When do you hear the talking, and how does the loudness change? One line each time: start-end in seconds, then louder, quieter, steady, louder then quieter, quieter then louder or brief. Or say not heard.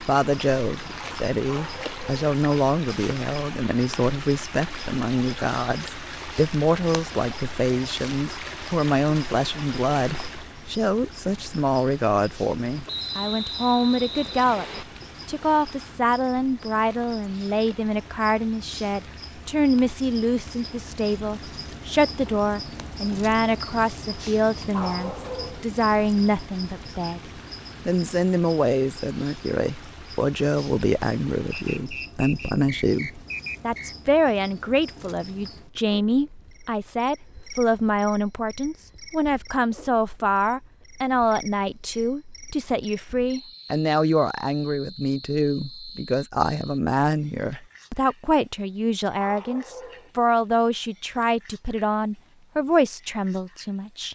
0.0-54.0 steady.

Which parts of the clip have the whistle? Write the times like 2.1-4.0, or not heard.
12.8-14.8, 31.5-34.0.